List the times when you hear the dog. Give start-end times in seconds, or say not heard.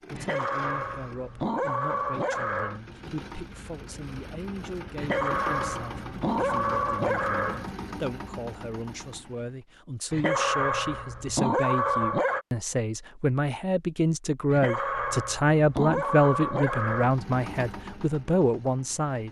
0.1-2.8, 5.0-7.7, 10.1-12.4, 14.5-17.1.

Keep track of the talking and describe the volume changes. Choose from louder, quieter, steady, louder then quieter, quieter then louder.
louder.